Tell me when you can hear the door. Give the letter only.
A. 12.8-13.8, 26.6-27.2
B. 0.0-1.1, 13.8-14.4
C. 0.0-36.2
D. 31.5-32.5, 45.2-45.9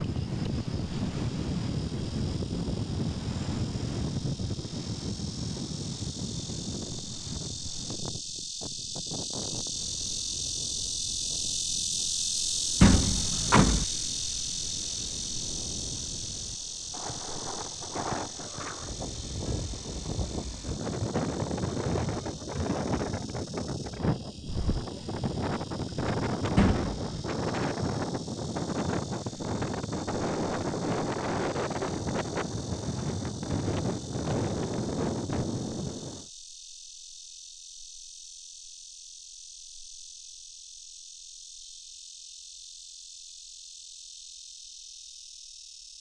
A.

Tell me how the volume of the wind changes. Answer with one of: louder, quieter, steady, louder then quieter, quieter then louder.
quieter then louder.